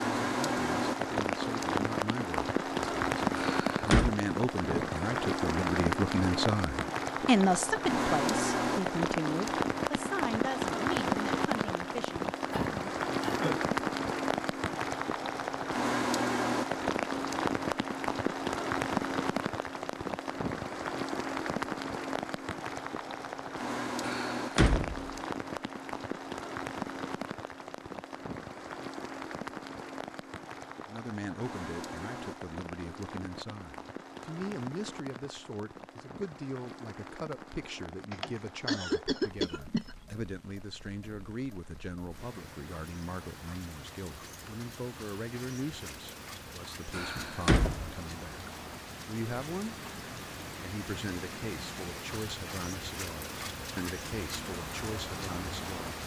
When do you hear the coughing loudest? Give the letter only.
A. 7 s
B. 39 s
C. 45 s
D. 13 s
B.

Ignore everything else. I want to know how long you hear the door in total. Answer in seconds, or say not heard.
3 s.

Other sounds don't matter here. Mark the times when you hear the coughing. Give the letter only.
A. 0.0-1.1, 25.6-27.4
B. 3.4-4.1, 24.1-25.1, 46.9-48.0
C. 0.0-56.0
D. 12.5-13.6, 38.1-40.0
D.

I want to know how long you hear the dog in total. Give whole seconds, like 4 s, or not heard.
not heard.